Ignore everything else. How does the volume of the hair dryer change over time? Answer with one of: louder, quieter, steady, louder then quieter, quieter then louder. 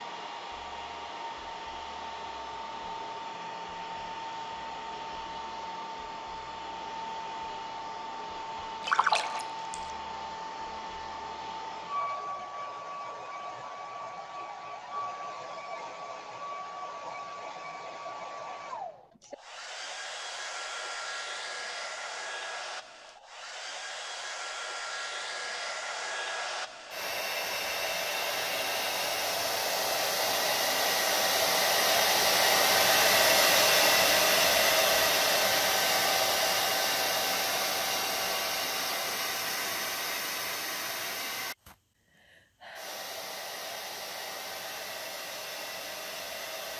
louder then quieter.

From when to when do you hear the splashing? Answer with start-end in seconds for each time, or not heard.
8.8-9.9.